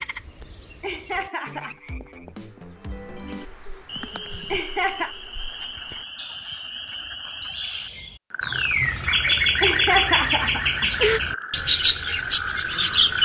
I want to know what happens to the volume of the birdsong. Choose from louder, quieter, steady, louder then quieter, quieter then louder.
louder.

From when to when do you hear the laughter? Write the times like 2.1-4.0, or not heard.
0.8-1.8, 4.5-5.2, 9.6-11.2.